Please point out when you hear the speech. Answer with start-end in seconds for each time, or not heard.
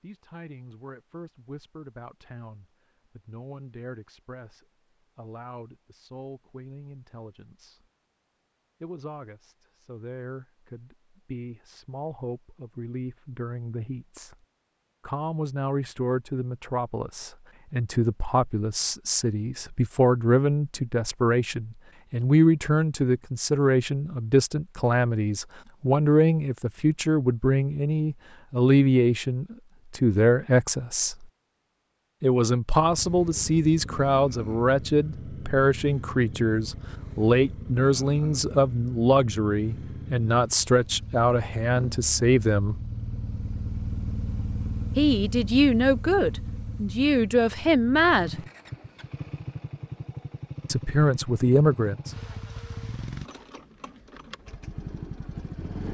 0.0-7.8, 8.8-14.3, 15.1-31.2, 32.2-42.8, 45.0-48.4, 50.6-52.1.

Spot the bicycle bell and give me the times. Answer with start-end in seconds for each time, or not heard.
not heard.